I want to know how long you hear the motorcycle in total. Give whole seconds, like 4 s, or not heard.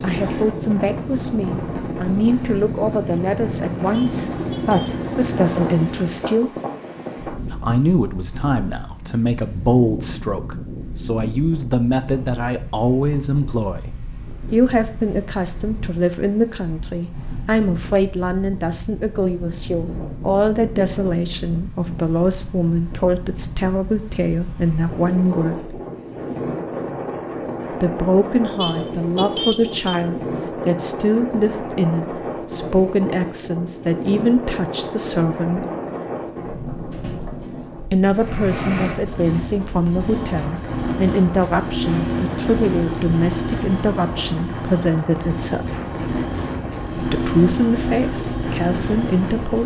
18 s.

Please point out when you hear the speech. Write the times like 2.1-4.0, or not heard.
0.0-6.5, 7.5-13.9, 14.5-25.8, 27.7-35.6, 37.9-45.7, 47.0-49.6.